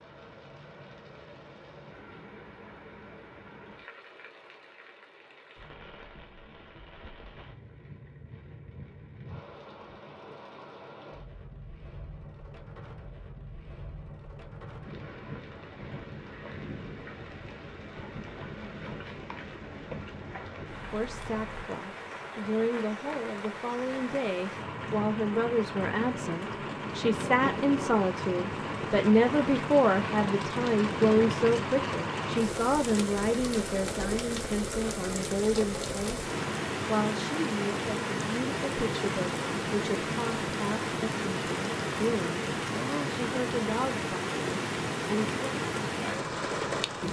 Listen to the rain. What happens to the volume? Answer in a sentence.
The volume of the rain goes up.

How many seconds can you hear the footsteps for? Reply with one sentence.
You can't hear the footsteps here.